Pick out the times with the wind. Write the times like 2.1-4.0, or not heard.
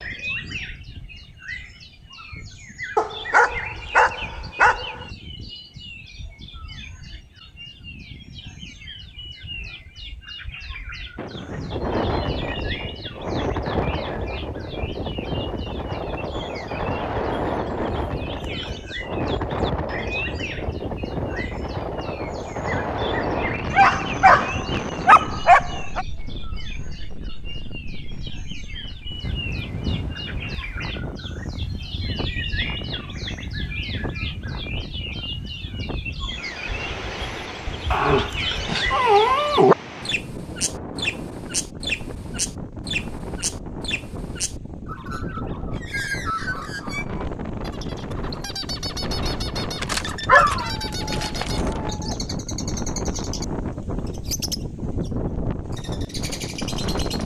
11.2-57.2.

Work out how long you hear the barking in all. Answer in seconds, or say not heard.
9 s.